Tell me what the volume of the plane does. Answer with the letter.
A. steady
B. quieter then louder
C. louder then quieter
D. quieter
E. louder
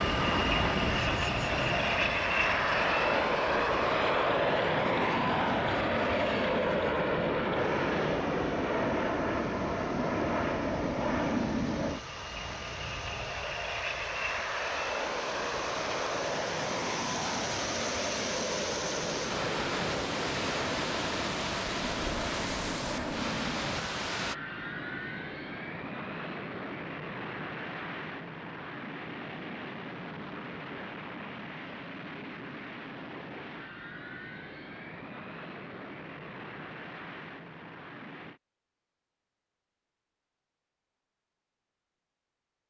D.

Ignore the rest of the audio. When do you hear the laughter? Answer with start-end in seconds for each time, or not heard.
0.8-1.9.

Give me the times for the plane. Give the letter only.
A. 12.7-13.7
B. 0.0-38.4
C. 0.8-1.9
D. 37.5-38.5
B.